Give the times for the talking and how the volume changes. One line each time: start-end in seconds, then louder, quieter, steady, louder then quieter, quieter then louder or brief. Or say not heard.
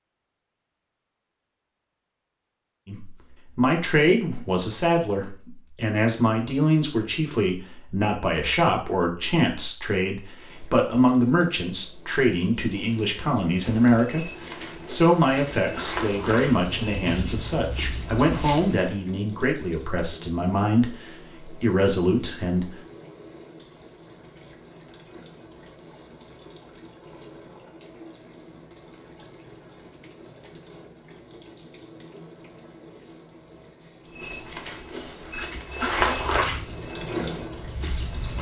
2.9-22.7 steady.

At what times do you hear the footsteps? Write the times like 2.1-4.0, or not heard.
13.6-19.0, 34.1-38.3.